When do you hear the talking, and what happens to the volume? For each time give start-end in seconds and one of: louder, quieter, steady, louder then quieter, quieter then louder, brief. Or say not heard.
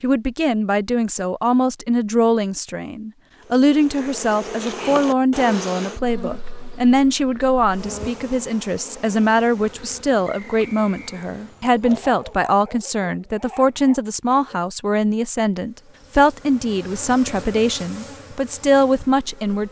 0.0-19.6 steady.